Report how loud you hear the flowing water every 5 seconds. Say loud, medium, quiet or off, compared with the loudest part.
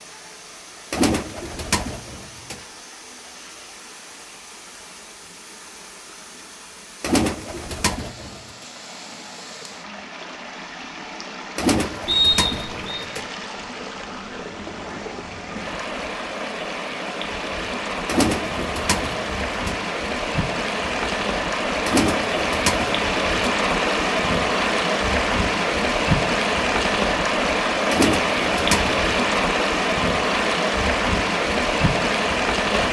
quiet, quiet, quiet, medium, loud, loud, loud.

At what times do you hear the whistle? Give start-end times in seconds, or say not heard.
12.1-13.1.